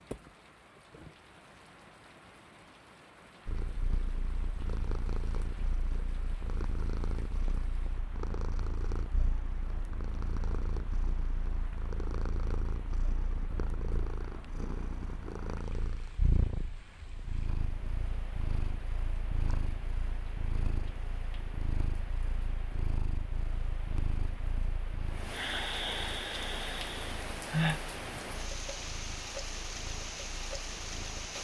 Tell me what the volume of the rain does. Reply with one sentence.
The volume of the rain goes up.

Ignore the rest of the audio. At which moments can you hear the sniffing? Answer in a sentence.
The sniffing can be heard from 25.3 to 27.8 s.